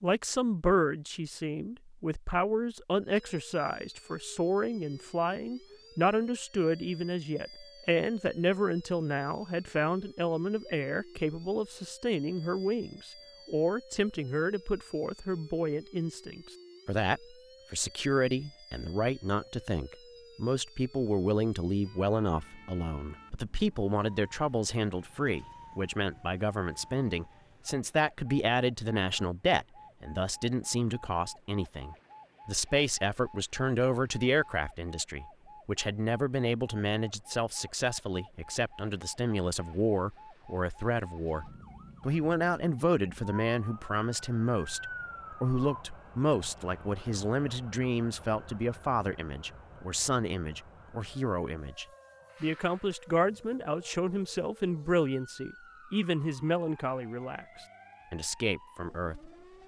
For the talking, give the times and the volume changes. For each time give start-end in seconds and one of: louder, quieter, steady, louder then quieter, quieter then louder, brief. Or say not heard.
0.0-59.3 steady.